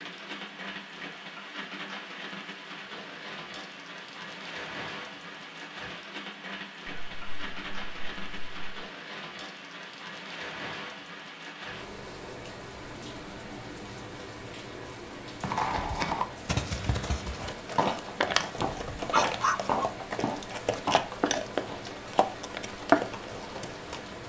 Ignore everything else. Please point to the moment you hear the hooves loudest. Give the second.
23 s.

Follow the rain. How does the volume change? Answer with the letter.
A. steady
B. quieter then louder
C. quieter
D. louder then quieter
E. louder
A.